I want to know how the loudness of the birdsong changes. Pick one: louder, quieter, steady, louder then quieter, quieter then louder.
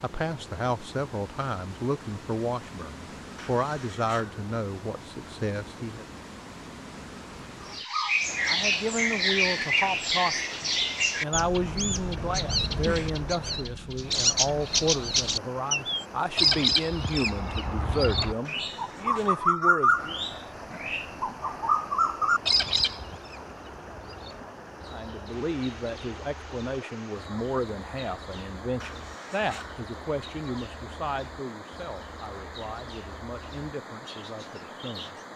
quieter.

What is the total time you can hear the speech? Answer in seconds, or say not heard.
28 s.